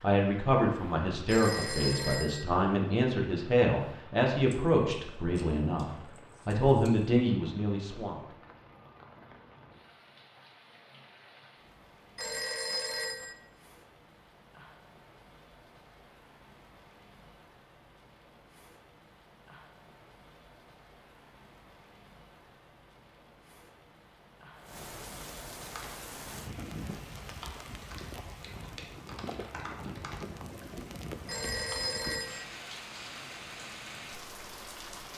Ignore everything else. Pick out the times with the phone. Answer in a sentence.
The phone can be heard from 1.2 to 2.5 s, from 12.2 to 13.3 s and from 31.2 to 32.5 s.